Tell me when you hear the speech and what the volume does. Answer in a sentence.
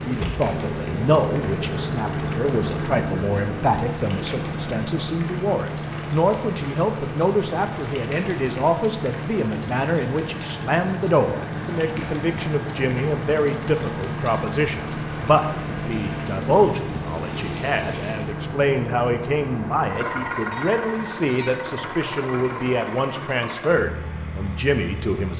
You can hear the speech from 0.0 to 25.3 s, at a steady volume.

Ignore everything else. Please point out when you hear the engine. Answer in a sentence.
You can hear the engine from 0.0 to 25.3 s.